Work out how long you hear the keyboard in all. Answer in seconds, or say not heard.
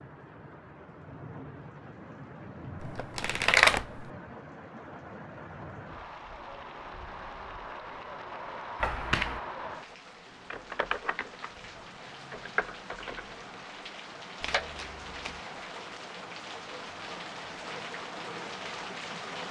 3 s.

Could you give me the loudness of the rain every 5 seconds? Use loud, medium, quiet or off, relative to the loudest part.
medium, loud, medium, loud.